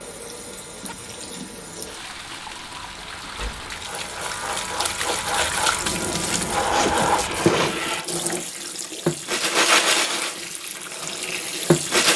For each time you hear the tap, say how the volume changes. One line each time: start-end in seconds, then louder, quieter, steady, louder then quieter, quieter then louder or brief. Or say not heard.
0.0-12.1 louder.